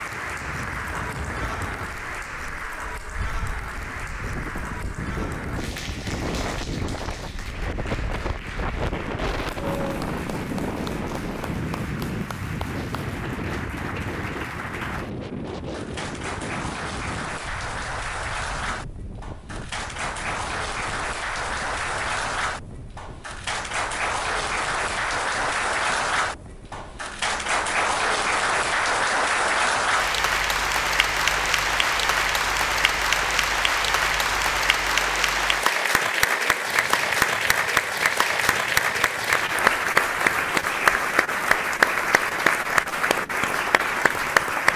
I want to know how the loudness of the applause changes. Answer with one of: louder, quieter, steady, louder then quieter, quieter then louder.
louder.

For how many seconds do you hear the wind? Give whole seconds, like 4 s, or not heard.
45 s.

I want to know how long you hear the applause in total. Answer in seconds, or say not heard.
45 s.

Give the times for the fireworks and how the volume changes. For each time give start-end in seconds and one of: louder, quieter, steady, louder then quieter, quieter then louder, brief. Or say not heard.
not heard.